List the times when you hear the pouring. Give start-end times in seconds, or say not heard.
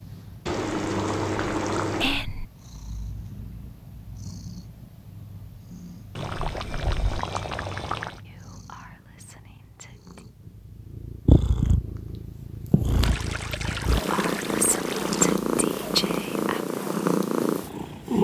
0.5-2.1, 6.2-8.2, 13.0-15.4.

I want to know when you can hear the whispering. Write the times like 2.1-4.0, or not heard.
2.0-2.5, 8.2-10.2, 13.7-16.6.